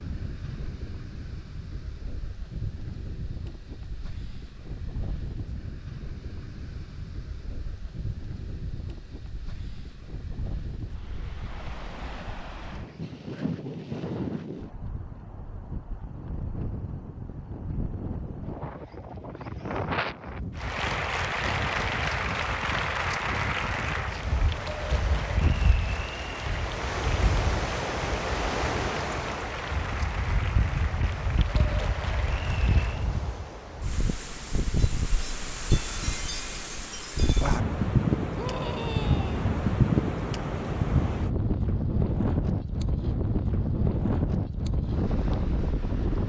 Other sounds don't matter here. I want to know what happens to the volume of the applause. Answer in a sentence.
The volume of the applause goes down.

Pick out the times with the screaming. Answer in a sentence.
You can hear the screaming from 38.4 to 39.5 s.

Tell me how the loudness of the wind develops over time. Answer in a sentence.
The volume of the wind goes up.